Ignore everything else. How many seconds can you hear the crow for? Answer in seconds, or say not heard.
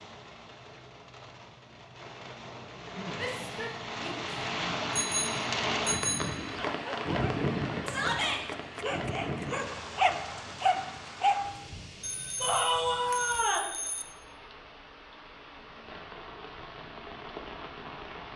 not heard.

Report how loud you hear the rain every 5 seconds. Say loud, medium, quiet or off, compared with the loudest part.
medium, loud, quiet, medium.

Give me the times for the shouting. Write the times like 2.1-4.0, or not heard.
3.1-4.2, 7.8-8.4, 12.4-13.7.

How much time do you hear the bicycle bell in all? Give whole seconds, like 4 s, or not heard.
4 s.